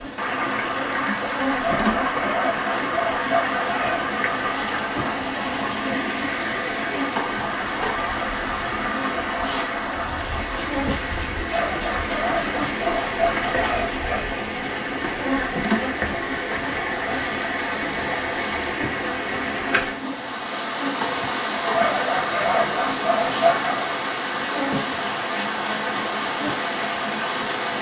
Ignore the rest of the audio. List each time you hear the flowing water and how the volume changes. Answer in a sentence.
The flowing water can be heard from 0.0 to 27.7 s, at a steady volume.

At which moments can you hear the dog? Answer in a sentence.
You can hear the dog from 1.6 to 4.1 s, from 11.5 to 14.2 s and from 21.7 to 23.9 s.